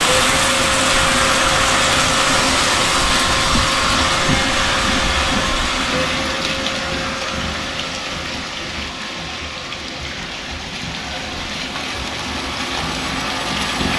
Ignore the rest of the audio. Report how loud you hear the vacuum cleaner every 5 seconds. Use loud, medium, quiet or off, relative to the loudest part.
loud, medium, medium.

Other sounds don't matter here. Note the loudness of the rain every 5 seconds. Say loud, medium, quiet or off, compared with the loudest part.
loud, medium, medium.